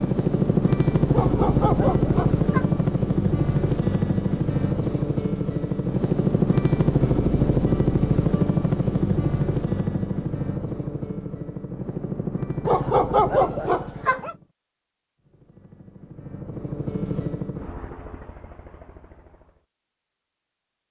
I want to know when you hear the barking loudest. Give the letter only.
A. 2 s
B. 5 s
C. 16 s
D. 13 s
D.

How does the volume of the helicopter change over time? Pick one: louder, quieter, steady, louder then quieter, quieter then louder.
quieter.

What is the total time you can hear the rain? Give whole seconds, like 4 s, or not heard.
not heard.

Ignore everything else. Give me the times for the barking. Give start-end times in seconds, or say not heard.
1.1-2.6, 12.7-14.3.